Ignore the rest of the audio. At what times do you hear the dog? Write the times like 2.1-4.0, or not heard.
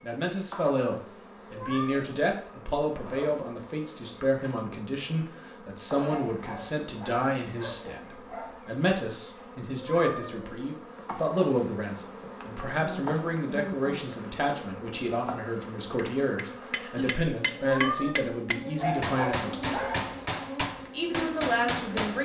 6.0-8.6, 18.8-20.4.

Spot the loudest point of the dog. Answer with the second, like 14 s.
19 s.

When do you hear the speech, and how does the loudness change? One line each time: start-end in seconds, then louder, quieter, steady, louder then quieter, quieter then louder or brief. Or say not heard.
0.0-19.8 steady
20.8-22.2 brief.